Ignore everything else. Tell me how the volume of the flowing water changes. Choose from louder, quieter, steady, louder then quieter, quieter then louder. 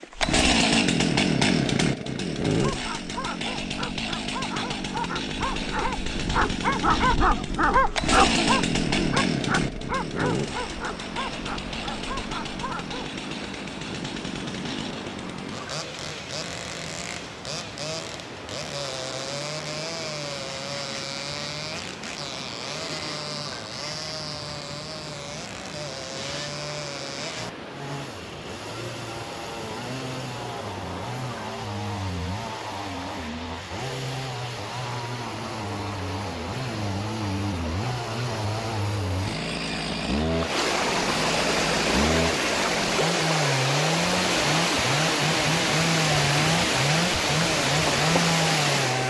louder.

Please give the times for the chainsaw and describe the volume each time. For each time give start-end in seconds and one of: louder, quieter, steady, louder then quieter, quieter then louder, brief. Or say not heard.
0.0-49.0 quieter then louder.